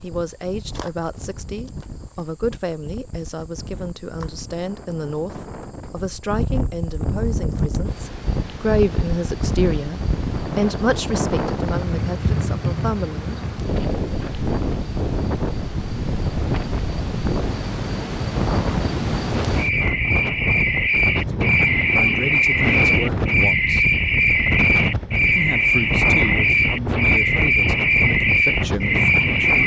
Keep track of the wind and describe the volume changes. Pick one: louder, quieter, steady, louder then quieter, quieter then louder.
louder.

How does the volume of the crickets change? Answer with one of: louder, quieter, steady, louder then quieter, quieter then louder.
louder.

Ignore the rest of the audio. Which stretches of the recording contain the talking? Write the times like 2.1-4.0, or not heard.
0.0-13.5, 21.3-23.9, 25.4-29.6.